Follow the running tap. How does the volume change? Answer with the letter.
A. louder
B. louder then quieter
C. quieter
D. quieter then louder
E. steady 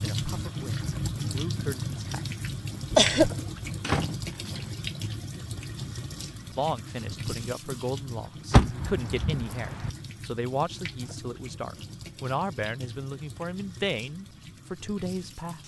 C.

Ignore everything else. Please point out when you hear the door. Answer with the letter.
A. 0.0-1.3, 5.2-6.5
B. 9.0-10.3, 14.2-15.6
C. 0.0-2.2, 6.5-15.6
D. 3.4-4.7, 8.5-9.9
D.